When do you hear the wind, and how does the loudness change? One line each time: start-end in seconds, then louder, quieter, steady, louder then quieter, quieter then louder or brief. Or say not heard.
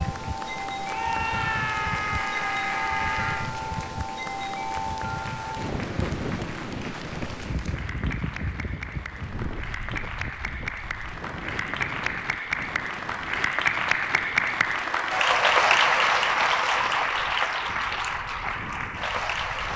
0.0-19.7 quieter.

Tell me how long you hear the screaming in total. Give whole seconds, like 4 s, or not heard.
3 s.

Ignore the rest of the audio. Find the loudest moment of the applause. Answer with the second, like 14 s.
16 s.